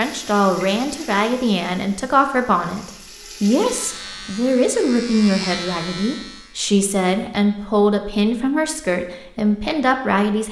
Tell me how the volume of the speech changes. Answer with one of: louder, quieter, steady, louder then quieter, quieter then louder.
steady.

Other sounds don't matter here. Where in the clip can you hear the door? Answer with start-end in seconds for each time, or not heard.
not heard.